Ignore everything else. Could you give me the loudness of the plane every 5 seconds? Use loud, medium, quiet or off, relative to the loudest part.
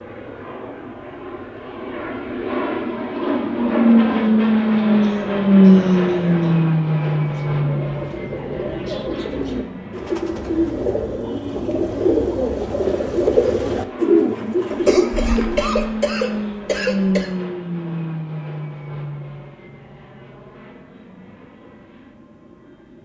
loud, loud, quiet, medium, quiet.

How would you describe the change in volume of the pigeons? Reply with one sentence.
The volume of the pigeons goes up.